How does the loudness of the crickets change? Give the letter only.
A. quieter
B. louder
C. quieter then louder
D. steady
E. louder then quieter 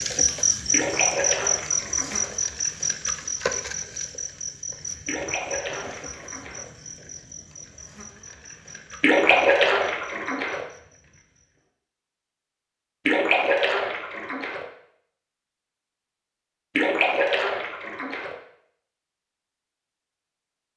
A.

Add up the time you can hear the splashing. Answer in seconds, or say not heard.
8 s.